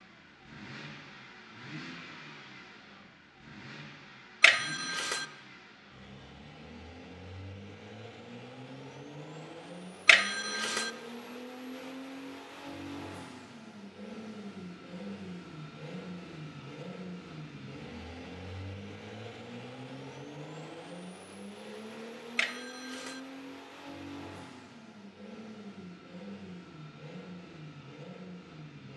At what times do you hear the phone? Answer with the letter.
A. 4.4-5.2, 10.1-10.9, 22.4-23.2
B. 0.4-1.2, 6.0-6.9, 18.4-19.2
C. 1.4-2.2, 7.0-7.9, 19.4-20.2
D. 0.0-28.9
A.